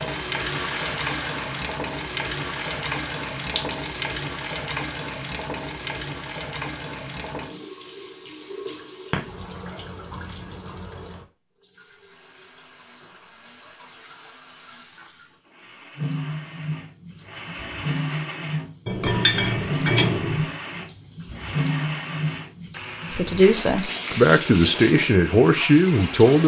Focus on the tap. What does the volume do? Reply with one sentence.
The loudness of the tap goes down, then up.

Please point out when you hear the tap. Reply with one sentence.
The tap can be heard from 0.0 to 26.4 s.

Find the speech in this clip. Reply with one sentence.
The speech can be heard from 23.1 to 26.4 s.